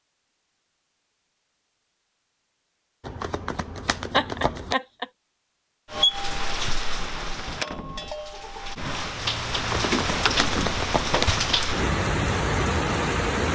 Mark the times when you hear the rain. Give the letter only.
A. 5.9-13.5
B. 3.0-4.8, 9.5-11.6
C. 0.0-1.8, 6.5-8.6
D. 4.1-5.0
A.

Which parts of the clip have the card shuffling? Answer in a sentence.
The card shuffling can be heard from 3.0 to 4.8 s and from 9.5 to 11.6 s.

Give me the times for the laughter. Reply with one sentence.
You can hear the laughter from 4.1 to 5.0 s.